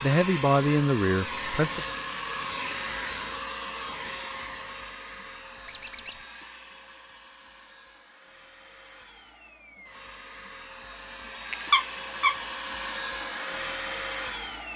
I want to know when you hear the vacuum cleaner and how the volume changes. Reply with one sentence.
You can hear the vacuum cleaner from 0.0 to 14.7 s, getting quieter then louder.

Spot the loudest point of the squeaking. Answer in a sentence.
The volume of the squeaking peaks at 12 seconds.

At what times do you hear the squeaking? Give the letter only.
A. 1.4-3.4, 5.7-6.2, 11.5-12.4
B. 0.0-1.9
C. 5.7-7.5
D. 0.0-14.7
A.